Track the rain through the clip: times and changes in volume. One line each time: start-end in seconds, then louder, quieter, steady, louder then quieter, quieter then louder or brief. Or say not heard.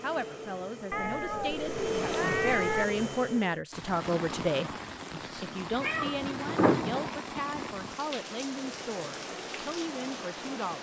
3.7-10.7 steady.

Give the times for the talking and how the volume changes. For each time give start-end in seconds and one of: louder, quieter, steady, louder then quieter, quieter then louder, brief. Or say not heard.
0.0-10.7 louder then quieter.